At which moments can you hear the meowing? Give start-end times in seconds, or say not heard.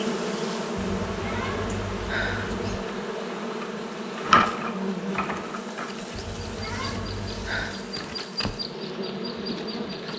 0.8-2.8, 6.2-7.8.